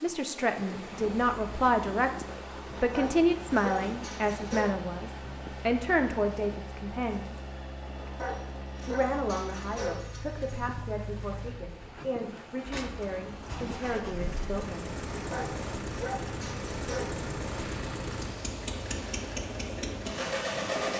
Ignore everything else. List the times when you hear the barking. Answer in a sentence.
You can hear the barking from 2.8 to 4.7 s, from 8.0 to 10.8 s and from 15.2 to 17.1 s.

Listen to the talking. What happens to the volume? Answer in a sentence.
The volume of the talking goes down.